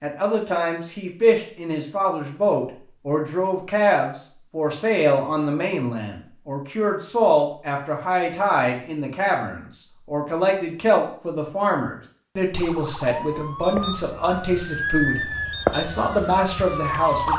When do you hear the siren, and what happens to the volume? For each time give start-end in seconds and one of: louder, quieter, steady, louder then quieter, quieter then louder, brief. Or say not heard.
12.6-17.3 louder then quieter.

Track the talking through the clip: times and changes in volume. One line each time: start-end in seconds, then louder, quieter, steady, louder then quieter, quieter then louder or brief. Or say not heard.
0.0-17.3 steady.